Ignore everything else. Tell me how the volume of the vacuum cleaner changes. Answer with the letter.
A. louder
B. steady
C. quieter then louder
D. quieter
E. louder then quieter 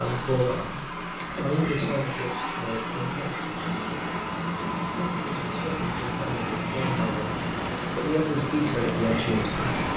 B.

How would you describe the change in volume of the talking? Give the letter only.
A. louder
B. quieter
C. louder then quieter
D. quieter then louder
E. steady
D.